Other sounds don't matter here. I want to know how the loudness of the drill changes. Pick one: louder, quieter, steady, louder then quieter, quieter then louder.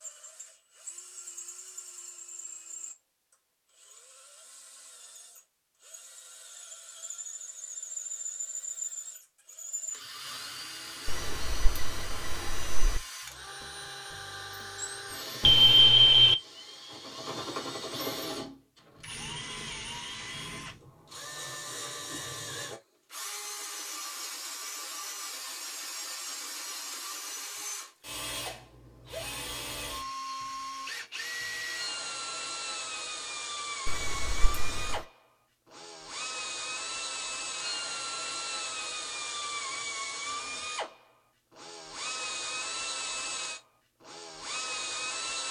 louder.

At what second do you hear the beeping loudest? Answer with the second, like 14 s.
16 s.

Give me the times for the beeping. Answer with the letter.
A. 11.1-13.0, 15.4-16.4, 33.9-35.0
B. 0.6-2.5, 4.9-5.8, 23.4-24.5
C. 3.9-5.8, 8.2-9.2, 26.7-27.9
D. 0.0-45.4
A.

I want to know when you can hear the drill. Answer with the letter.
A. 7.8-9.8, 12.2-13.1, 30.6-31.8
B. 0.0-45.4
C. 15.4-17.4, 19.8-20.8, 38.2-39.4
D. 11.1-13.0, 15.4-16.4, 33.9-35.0
B.